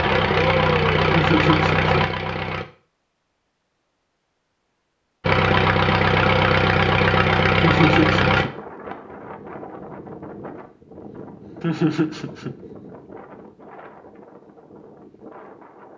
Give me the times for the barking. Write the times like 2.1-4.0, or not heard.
not heard.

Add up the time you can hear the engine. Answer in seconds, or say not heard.
6 s.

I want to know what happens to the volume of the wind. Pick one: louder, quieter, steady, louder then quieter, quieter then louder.
quieter.